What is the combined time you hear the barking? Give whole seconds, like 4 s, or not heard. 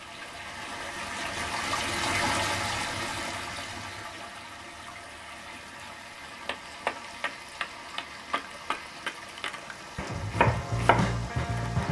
not heard.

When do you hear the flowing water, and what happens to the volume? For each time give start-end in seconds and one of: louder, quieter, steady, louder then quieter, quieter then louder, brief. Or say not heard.
0.0-11.8 quieter.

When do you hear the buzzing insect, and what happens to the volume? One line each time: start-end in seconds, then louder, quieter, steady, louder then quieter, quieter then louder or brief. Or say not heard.
not heard.